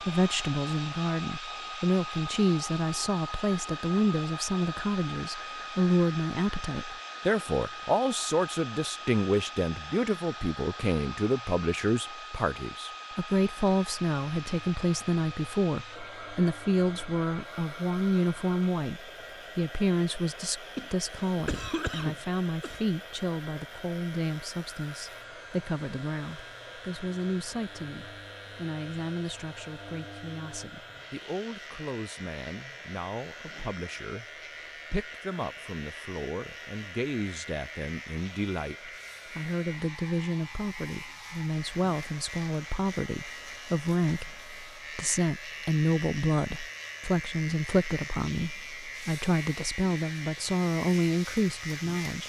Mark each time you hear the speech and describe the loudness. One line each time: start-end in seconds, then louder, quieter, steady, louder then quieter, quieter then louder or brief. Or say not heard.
0.1-34.2 quieter
34.9-52.2 louder.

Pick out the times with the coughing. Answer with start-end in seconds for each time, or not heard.
20.8-22.9.